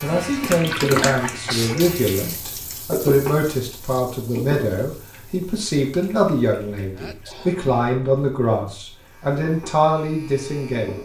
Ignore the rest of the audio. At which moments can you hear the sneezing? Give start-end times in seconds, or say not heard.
1.2-1.9, 6.9-7.6.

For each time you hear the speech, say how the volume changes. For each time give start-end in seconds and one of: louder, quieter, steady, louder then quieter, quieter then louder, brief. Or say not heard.
0.0-11.0 steady.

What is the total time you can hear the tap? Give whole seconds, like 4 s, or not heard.
11 s.